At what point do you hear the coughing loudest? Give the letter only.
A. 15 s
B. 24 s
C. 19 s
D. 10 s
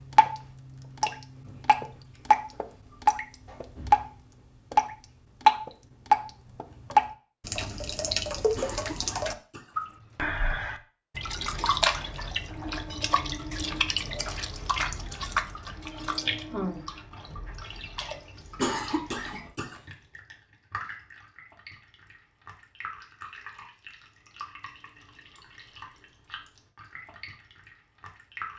C.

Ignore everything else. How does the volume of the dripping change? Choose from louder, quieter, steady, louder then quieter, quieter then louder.
quieter.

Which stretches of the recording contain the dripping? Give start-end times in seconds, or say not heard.
0.0-28.5.